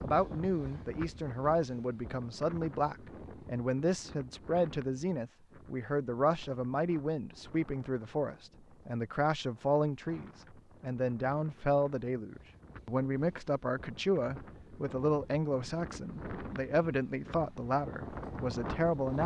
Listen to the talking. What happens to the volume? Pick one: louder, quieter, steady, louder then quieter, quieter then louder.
steady.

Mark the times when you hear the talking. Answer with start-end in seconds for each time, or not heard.
0.0-19.2.